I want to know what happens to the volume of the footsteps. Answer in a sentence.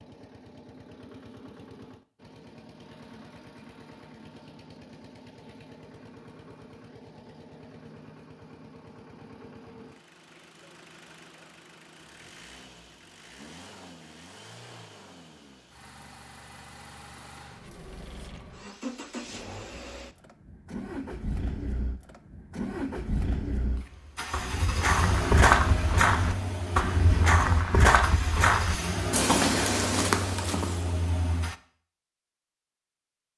The loudness of the footsteps stays about the same.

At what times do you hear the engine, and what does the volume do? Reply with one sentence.
The engine can be heard from 0.0 to 31.6 s, getting louder.